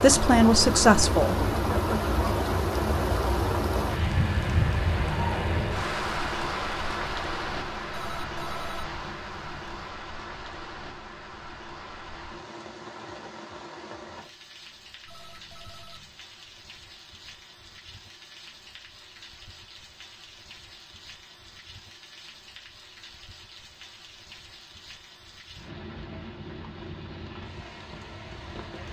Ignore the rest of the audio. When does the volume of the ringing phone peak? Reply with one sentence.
The volume of the ringing phone peaks at 9 seconds.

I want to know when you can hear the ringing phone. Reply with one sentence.
The ringing phone can be heard from 7.9 to 9.9 s and from 15.1 to 16.1 s.